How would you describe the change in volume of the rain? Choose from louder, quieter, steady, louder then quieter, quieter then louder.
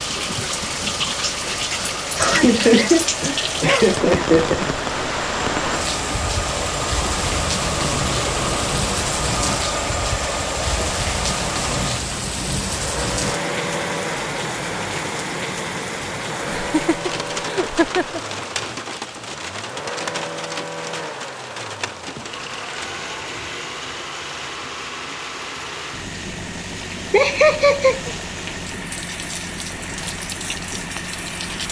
quieter.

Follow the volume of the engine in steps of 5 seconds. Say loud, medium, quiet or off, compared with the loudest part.
medium, loud, loud, medium, medium, medium, medium.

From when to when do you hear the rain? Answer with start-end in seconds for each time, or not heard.
0.0-31.6.